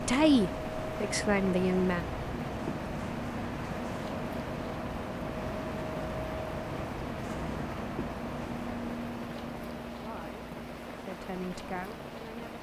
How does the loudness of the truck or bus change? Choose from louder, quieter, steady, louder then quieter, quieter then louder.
quieter.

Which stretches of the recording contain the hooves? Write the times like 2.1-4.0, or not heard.
not heard.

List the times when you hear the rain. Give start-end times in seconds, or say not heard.
0.0-12.5.